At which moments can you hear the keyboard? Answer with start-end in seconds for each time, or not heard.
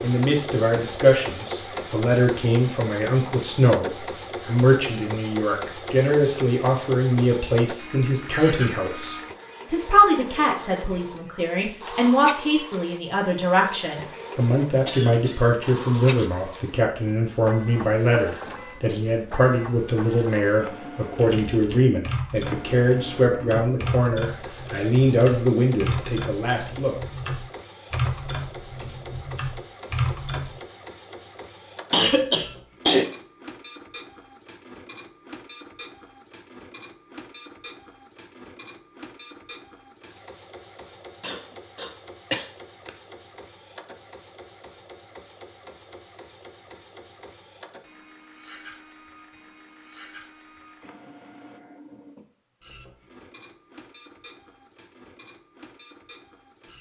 21.1-30.6.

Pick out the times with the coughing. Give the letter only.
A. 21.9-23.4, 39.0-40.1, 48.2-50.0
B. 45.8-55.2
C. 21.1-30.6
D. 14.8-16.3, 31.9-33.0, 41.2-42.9
D.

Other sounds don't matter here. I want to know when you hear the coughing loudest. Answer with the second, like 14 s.
33 s.